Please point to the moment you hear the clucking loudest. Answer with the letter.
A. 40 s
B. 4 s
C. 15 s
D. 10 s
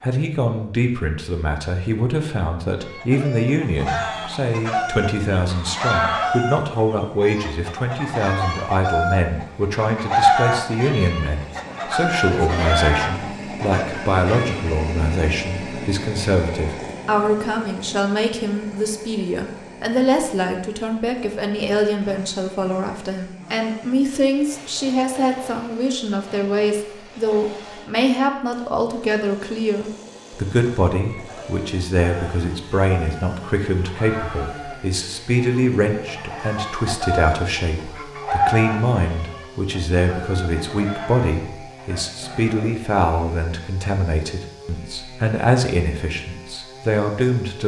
D.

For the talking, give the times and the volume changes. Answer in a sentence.
The talking can be heard from 0.0 to 47.6 s, at a steady volume.